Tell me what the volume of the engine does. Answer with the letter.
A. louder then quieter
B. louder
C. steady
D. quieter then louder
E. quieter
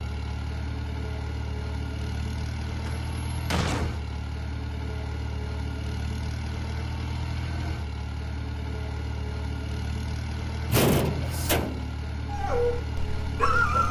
C.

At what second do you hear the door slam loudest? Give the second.
11 s.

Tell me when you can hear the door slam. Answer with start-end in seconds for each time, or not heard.
2.9-4.0, 10.7-11.9.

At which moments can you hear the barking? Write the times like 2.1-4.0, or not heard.
12.2-13.8.